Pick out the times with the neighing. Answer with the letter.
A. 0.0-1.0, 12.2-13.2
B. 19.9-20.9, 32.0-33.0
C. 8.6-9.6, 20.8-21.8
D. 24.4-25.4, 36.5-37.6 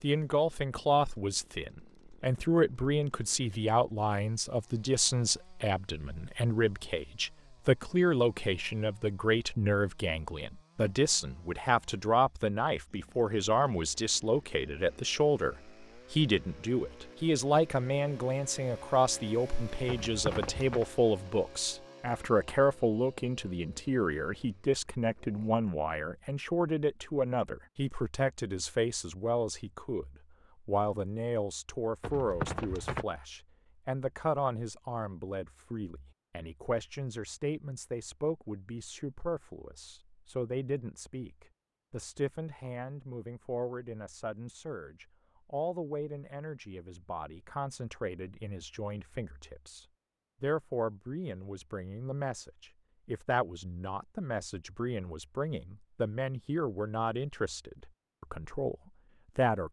B.